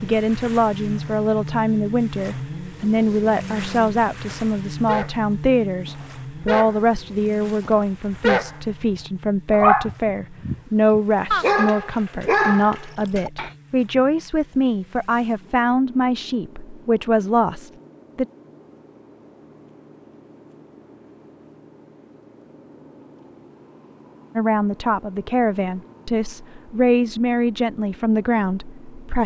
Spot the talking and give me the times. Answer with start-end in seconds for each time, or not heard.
0.0-18.2, 24.4-29.2.